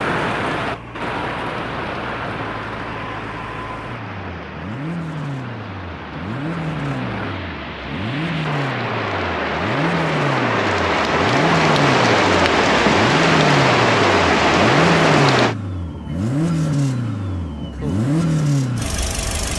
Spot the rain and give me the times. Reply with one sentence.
The rain can be heard from 0.0 to 15.6 s.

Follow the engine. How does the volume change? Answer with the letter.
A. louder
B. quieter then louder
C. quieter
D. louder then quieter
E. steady
A.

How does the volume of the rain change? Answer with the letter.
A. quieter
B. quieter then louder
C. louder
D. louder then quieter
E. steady
B.